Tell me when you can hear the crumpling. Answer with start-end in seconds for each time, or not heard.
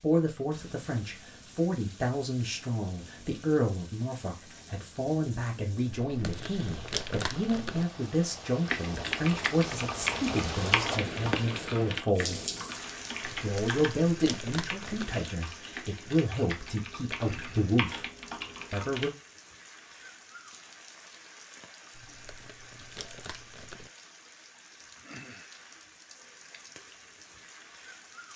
6.2-7.8, 13.3-15.2, 21.9-23.9.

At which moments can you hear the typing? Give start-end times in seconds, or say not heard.
8.7-19.1.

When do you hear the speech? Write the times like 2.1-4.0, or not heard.
0.0-12.4, 13.4-18.1, 18.7-19.1.